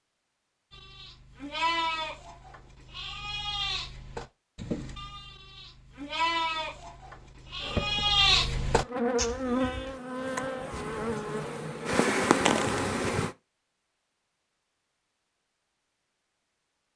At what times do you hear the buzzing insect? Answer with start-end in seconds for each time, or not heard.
7.6-13.3.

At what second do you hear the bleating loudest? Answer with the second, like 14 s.
8 s.